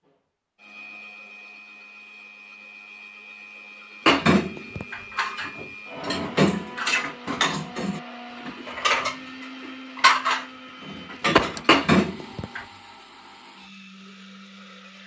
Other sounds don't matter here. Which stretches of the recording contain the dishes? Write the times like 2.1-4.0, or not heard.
4.0-12.6.